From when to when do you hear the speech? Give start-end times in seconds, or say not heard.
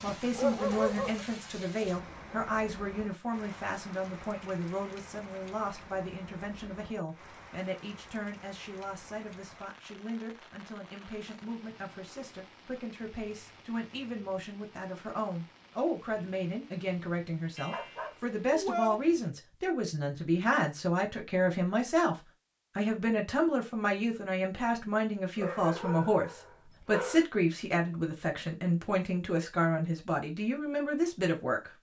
0.0-31.7.